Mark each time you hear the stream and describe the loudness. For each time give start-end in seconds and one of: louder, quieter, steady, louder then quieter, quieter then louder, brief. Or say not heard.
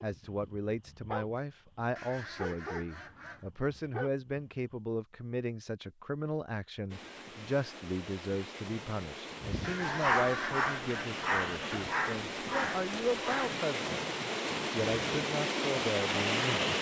6.9-16.7 louder.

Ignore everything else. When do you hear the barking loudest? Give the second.
10 s.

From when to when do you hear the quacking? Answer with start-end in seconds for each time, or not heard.
1.9-3.5, 9.6-11.9.